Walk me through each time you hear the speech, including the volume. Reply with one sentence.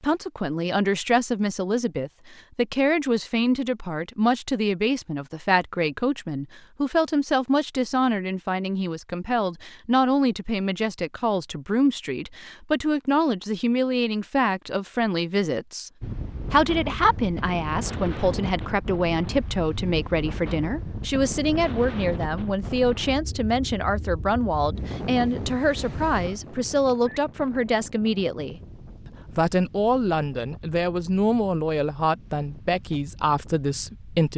You can hear the speech from 0.0 to 15.9 s, at a steady volume; and from 16.5 to 34.3 s, at a steady volume.